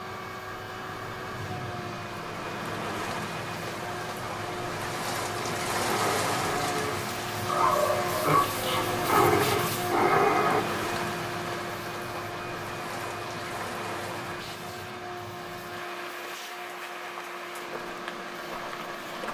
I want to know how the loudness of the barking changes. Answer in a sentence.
The volume of the barking goes up.